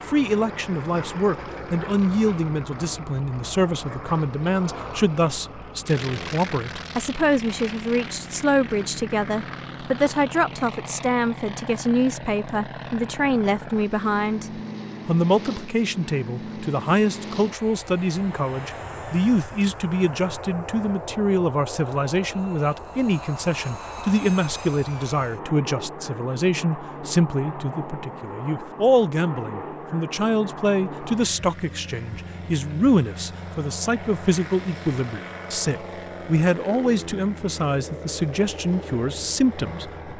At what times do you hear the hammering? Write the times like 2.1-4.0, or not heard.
not heard.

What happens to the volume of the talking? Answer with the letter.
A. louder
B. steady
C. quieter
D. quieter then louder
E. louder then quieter
B.